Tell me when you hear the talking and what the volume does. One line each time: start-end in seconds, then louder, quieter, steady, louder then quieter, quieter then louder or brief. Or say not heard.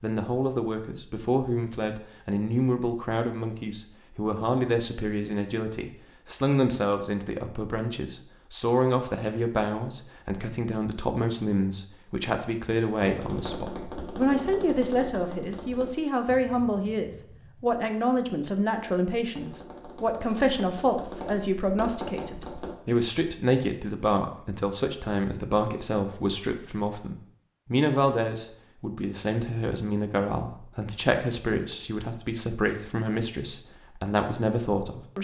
0.0-35.1 steady.